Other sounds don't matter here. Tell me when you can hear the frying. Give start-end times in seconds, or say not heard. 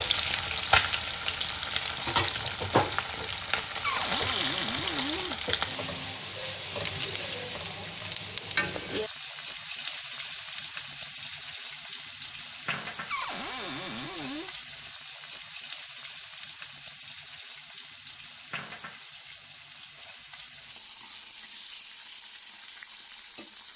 0.0-23.7.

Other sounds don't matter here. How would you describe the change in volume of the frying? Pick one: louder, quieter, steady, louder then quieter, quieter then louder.
quieter.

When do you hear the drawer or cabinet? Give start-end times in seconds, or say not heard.
3.8-5.4, 13.1-14.5.